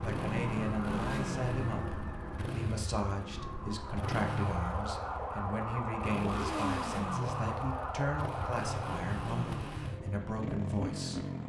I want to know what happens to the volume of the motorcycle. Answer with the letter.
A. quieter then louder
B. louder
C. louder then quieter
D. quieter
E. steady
E.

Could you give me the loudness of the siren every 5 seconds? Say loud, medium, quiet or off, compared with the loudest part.
loud, loud, off.